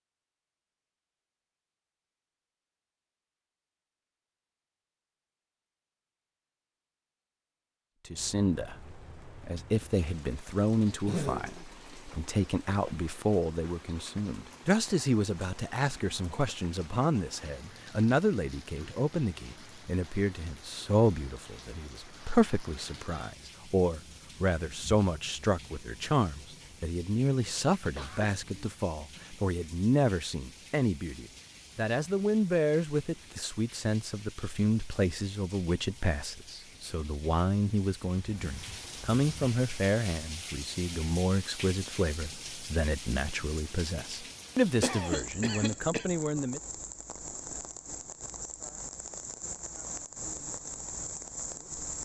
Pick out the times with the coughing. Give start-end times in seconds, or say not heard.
11.1-11.5, 27.9-28.8, 44.8-46.0.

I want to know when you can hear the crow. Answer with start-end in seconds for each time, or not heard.
not heard.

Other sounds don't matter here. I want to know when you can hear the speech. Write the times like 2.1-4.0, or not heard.
8.1-46.6.